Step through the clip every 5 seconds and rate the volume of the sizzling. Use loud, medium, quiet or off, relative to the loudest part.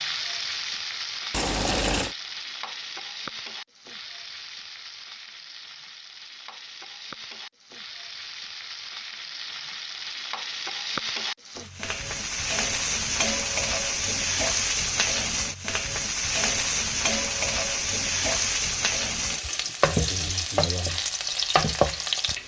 medium, quiet, loud, loud, loud.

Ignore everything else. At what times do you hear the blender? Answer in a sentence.
The blender can't be heard in this clip.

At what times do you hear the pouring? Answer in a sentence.
The pouring can be heard from 1.3 to 2.1 s.